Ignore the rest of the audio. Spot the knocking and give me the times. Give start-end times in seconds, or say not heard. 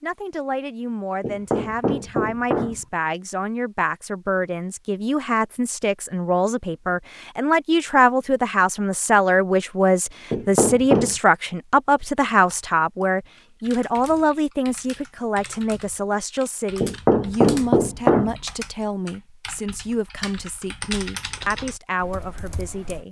1.2-2.8, 10.3-11.2, 16.8-18.4.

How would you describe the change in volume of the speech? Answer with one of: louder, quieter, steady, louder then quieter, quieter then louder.
louder then quieter.